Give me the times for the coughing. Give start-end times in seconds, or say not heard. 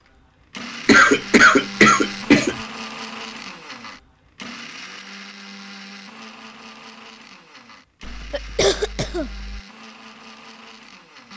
0.8-2.5, 8.1-9.6.